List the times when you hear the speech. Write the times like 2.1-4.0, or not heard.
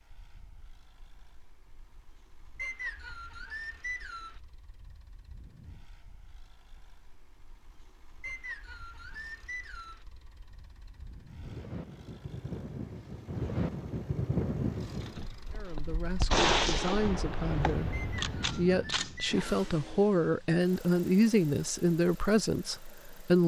15.5-23.4.